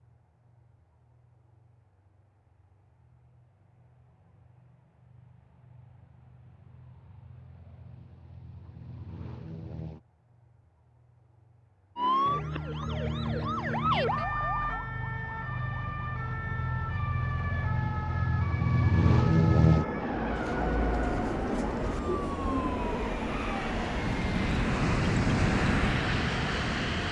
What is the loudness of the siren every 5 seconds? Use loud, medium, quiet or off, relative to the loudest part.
off, off, loud, medium, medium, off.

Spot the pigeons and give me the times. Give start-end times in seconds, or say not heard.
20.2-22.9.